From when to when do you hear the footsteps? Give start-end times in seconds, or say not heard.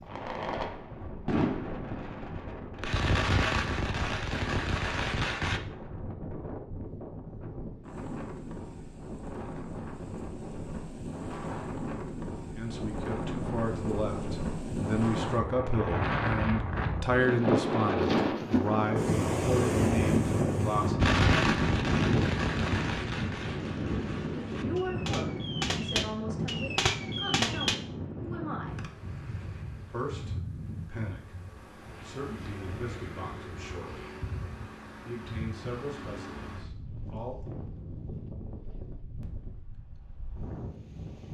not heard.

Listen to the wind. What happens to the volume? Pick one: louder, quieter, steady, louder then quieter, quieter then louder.
louder then quieter.